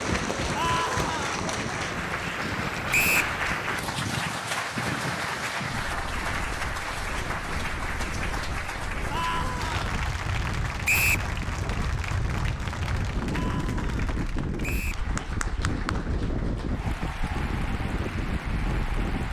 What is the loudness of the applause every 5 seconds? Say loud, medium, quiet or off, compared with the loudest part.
loud, loud, medium, medium.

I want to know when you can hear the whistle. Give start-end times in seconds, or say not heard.
2.9-3.4, 10.8-11.3, 14.6-15.1.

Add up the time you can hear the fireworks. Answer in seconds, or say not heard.
not heard.